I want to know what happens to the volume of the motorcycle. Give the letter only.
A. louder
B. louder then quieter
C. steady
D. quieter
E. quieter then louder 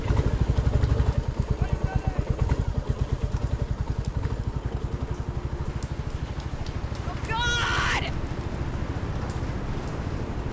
D.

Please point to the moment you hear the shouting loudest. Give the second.
8 s.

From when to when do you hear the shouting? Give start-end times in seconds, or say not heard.
1.6-2.3, 7.0-8.1.